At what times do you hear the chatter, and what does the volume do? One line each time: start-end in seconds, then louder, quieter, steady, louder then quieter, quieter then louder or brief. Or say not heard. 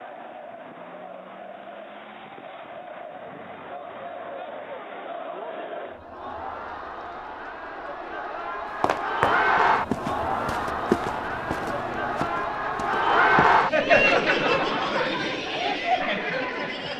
0.0-16.9 louder.